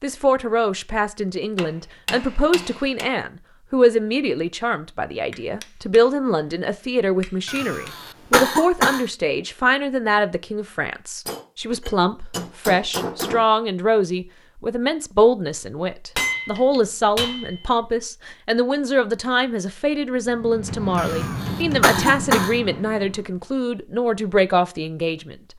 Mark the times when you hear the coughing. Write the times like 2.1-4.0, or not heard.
7.5-9.1, 20.9-22.6.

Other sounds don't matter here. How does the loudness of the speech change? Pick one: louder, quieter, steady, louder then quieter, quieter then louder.
steady.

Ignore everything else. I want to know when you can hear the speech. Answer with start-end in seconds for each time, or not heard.
0.0-25.4.